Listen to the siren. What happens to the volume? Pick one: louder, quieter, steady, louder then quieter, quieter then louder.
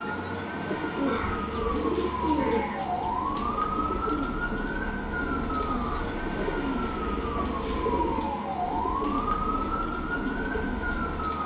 steady.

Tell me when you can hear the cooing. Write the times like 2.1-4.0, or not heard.
0.8-11.2.